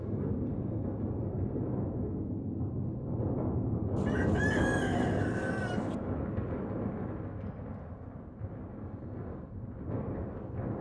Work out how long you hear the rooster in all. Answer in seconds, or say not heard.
2 s.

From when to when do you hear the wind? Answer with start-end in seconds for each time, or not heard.
0.0-10.7.